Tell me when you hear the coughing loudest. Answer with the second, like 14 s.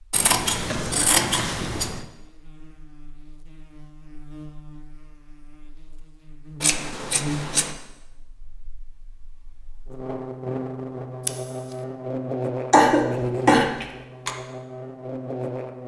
13 s.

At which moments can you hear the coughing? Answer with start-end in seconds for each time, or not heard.
0.7-1.4, 12.7-14.3.